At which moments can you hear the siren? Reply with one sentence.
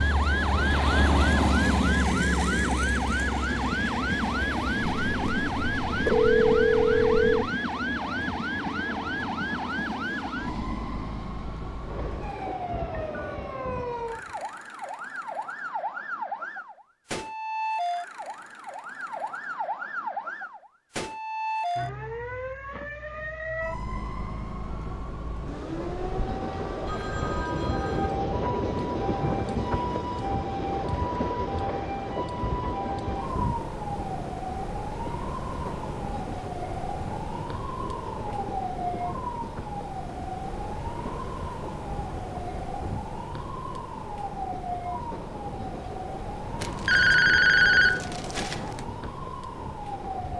You can hear the siren from 0.0 to 50.3 s.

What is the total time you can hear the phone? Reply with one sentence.
The phone can be heard for 6 seconds in total.